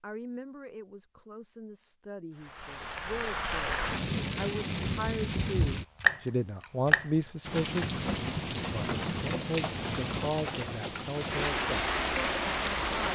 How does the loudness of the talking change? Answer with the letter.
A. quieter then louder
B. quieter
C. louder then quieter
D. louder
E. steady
C.